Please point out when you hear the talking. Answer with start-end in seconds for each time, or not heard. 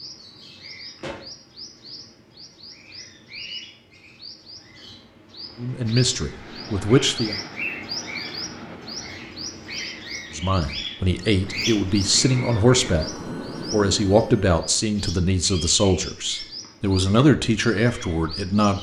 5.5-7.4, 10.3-13.1, 13.7-18.7.